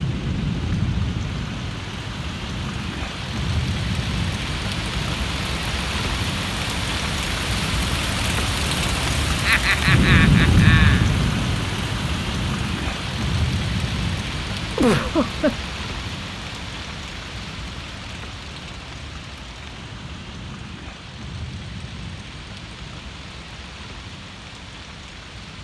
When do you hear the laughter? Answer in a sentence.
The laughter can be heard from 9.4 to 11.1 s and from 14.8 to 15.6 s.